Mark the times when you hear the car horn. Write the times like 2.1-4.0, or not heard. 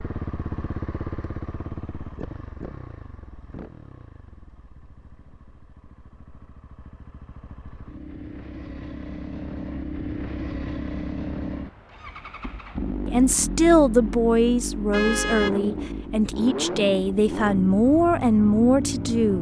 14.9-15.6.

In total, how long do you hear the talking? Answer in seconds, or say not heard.
6 s.